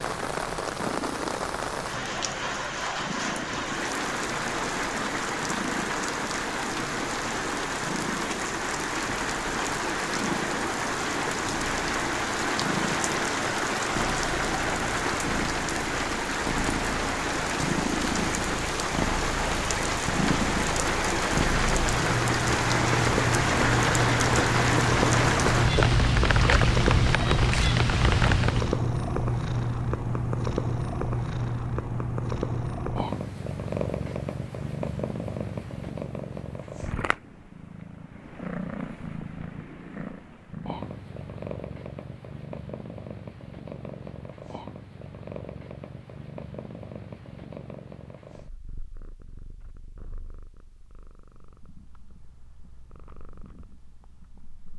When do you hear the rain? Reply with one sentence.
You can hear the rain from 0.0 to 28.8 s.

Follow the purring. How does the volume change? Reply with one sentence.
The loudness of the purring goes up, then down.